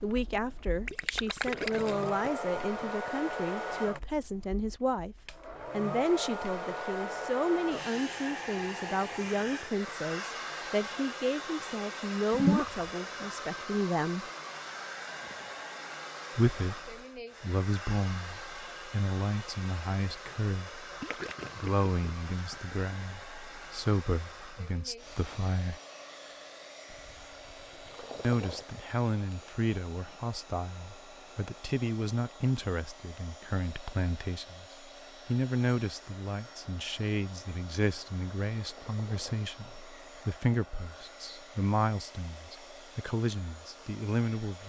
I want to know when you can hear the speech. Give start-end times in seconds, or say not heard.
0.0-14.2, 16.4-20.9, 21.6-25.8, 28.2-34.6, 35.2-44.6.